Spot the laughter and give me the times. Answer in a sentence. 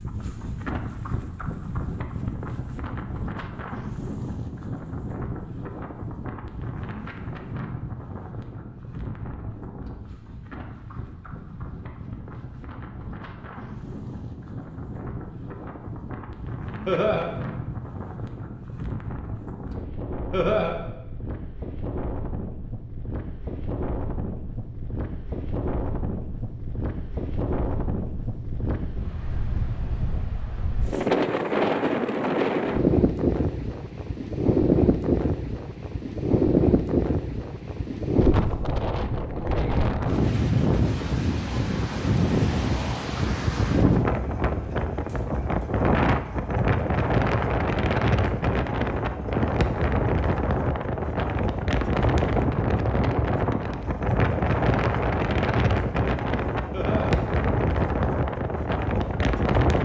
You can hear the laughter from 16.9 to 17.3 s, from 20.3 to 20.8 s and from 56.7 to 57.1 s.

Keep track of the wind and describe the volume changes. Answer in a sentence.
The loudness of the wind goes up.